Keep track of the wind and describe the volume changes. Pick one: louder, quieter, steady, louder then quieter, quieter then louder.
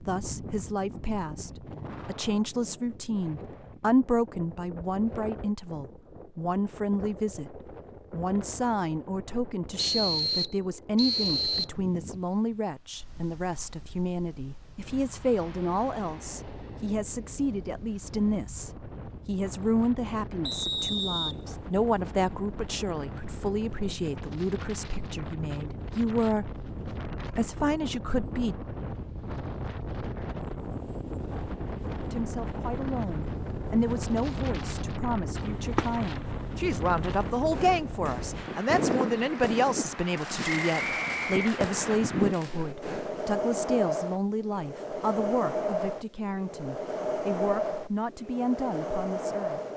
louder.